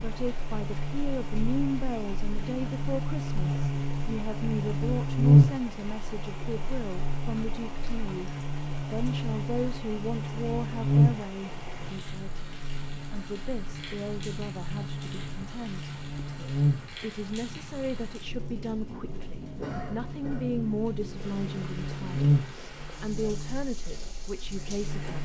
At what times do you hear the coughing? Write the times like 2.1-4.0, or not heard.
19.6-20.6.